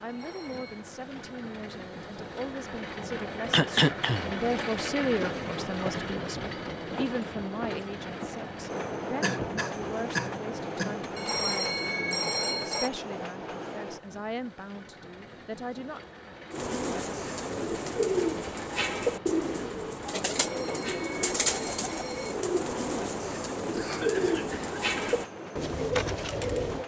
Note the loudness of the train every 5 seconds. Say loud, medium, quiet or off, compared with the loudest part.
loud, loud, loud, medium, medium, medium.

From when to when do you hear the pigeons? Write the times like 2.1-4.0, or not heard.
16.5-26.8.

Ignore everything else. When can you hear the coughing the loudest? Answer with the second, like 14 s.
4 s.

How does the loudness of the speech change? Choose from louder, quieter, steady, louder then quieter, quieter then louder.
louder then quieter.